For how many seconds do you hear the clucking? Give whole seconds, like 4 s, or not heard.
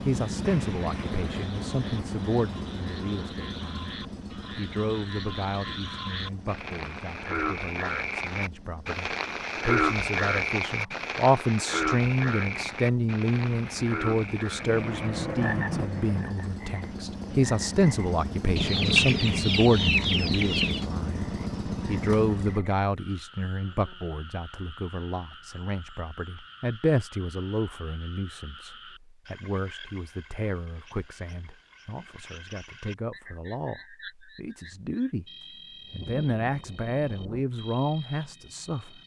2 s.